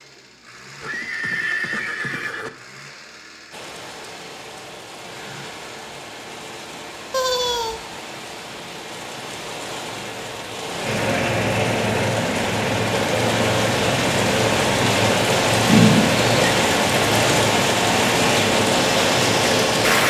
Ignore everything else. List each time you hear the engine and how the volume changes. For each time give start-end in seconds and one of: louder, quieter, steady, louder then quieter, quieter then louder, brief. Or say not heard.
0.0-20.0 louder.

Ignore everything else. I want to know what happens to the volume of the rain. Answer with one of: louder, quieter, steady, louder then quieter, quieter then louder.
louder.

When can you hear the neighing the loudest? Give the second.
16 s.